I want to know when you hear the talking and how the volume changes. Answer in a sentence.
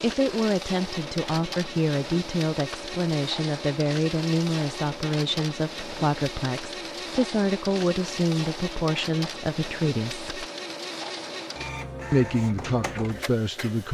You can hear the talking from 0.0 to 10.3 s, at a steady volume; and briefly from 12.1 to 13.8 s.